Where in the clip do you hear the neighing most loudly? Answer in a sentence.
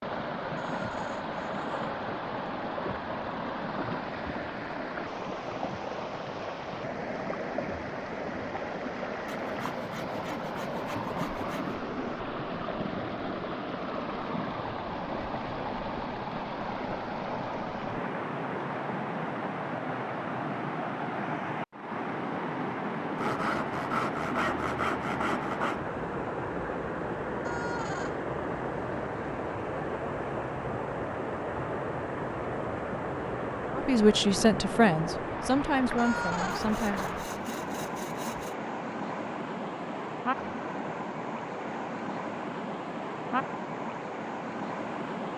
The volume of the neighing peaks at 36 seconds.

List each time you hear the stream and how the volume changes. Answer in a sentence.
You can hear the stream from 0.0 to 45.3 s, at a steady volume.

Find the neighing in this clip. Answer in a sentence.
The neighing can be heard from 0.6 to 1.7 s, from 27.4 to 28.2 s and from 36.0 to 36.6 s.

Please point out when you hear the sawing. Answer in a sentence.
The sawing can be heard from 9.2 to 11.8 s, from 23.1 to 25.8 s and from 36.5 to 38.5 s.